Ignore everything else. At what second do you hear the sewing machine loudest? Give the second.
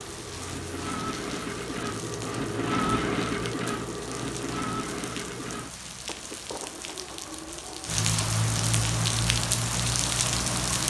3 s.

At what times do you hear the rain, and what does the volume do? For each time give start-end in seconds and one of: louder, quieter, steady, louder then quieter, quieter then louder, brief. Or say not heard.
0.0-10.8 louder.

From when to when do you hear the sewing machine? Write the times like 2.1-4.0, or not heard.
0.0-10.8.